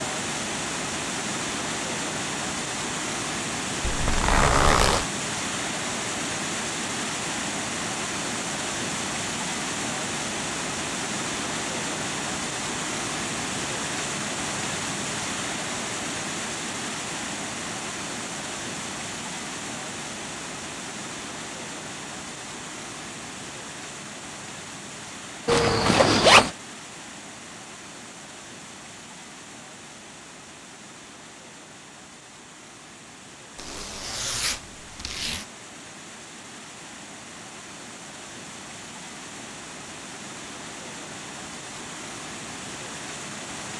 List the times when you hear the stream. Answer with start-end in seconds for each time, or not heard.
0.0-43.7.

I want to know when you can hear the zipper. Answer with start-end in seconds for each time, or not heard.
3.8-5.0, 25.4-26.6, 33.5-35.5.